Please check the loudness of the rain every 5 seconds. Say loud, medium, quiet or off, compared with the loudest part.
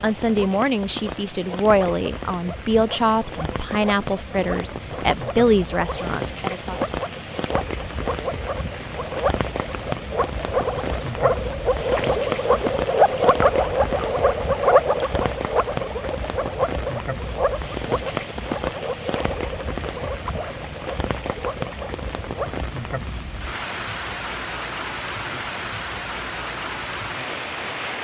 medium, loud, loud, loud, loud, loud.